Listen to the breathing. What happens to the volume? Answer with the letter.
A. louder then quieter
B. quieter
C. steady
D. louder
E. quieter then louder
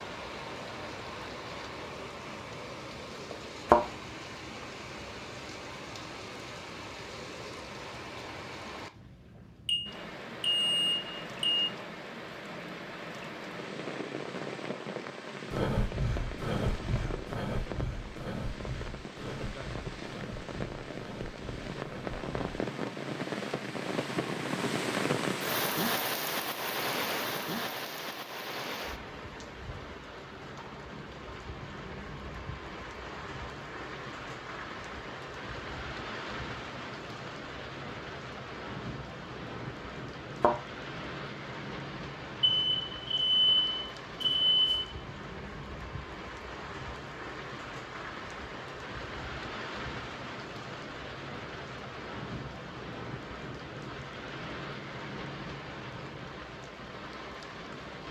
B.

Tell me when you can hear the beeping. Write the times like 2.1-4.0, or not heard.
9.7-11.7, 42.4-44.9.